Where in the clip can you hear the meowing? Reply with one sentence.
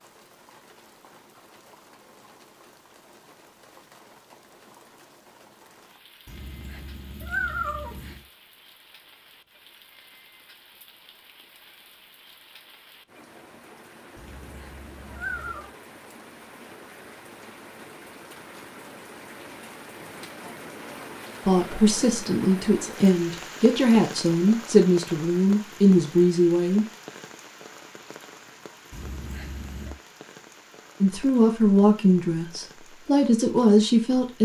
You can hear the meowing from 6.2 to 8.2 s, from 14.2 to 15.7 s and from 28.9 to 29.9 s.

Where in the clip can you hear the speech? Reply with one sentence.
You can hear the speech from 21.4 to 26.9 s and from 31.0 to 34.4 s.